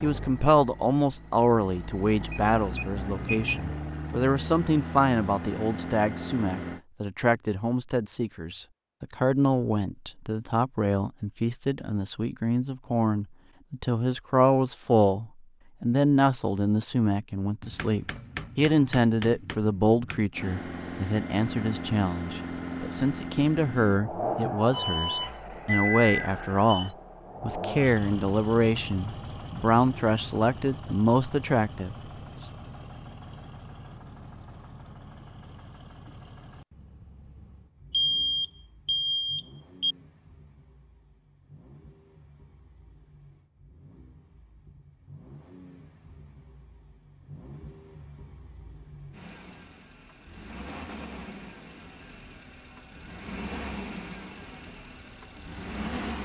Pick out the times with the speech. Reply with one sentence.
The speech can be heard from 0.0 to 31.9 s.